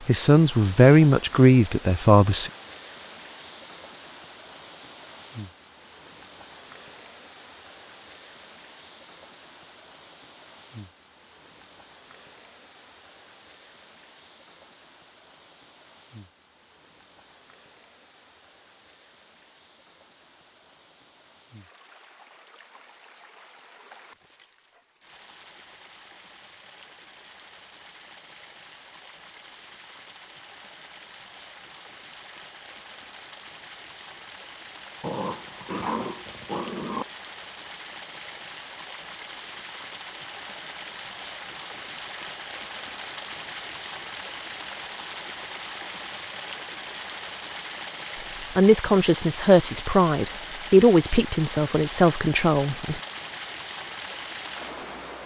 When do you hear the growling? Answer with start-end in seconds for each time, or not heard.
35.0-37.0.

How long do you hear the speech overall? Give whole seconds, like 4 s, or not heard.
7 s.